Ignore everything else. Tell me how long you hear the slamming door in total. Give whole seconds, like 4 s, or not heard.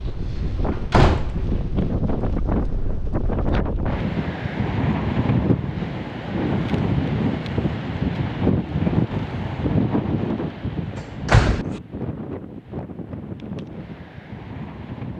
2 s.